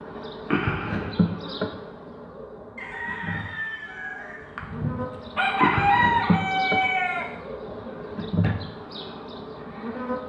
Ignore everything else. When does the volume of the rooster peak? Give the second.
6 s.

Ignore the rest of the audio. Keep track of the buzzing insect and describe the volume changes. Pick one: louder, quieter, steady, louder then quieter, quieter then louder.
quieter then louder.